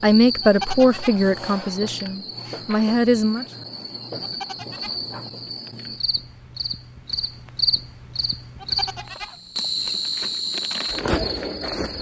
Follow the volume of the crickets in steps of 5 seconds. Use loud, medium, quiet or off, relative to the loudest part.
medium, loud, loud.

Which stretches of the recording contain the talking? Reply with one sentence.
You can hear the talking from 0.0 to 3.5 s.